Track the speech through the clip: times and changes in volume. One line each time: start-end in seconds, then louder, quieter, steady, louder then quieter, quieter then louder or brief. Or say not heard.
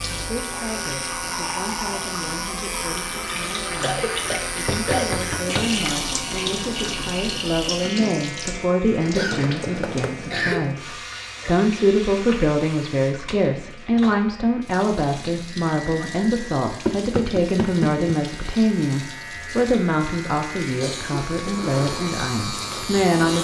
0.1-23.4 louder.